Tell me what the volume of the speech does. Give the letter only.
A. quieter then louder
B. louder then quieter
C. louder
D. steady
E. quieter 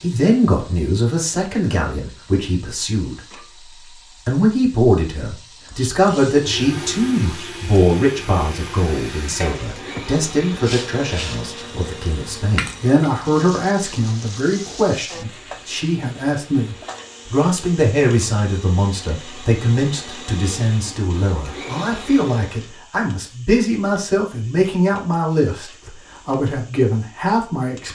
D.